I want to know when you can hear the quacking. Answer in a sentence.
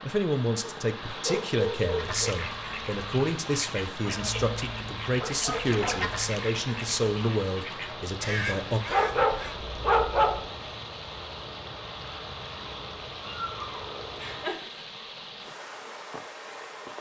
You can hear the quacking from 1.9 to 9.6 s.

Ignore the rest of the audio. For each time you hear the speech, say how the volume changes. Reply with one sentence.
You can hear the speech from 0.0 to 8.8 s, at a steady volume.